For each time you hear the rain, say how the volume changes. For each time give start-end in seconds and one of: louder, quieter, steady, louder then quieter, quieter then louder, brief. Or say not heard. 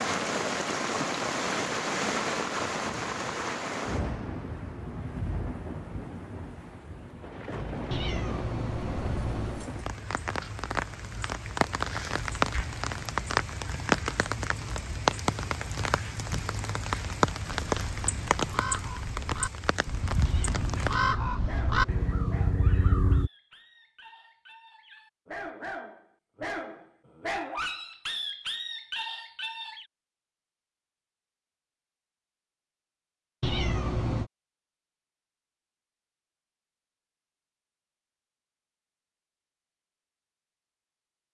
0.0-20.9 quieter then louder.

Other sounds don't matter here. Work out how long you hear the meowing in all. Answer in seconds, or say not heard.
5 s.